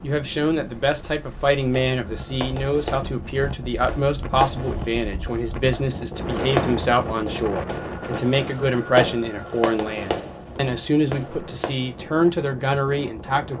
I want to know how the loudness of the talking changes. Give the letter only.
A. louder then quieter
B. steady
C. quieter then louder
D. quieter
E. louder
B.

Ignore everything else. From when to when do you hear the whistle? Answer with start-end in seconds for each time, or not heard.
not heard.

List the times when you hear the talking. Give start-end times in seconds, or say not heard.
0.0-13.5.